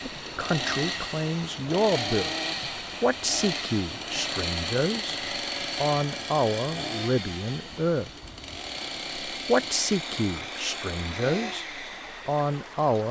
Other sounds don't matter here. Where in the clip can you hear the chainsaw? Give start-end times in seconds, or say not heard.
0.0-12.8.